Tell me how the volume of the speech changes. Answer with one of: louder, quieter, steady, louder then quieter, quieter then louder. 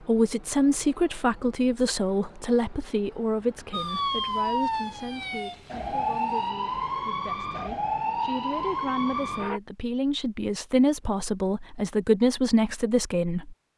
quieter then louder.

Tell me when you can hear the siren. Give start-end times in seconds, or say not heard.
3.7-9.6.